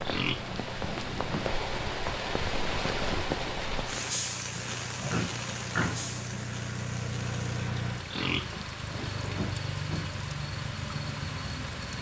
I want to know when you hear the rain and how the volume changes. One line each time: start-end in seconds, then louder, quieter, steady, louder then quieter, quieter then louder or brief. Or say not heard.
0.0-11.9 quieter.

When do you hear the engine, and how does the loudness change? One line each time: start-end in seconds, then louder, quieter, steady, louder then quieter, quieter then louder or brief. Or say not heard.
0.0-11.9 louder.